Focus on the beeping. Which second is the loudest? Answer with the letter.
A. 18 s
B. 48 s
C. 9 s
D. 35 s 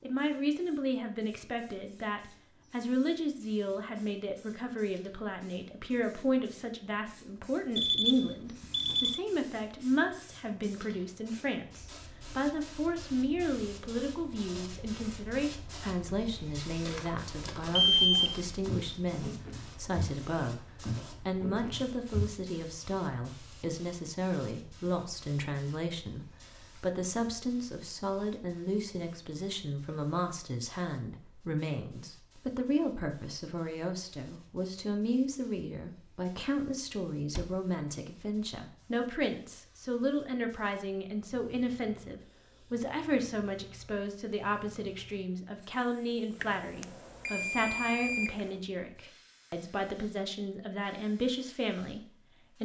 A.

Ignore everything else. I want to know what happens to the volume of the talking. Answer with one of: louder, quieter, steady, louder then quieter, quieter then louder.
steady.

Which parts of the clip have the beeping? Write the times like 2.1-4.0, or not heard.
7.8-9.2, 17.8-18.4, 46.4-48.4.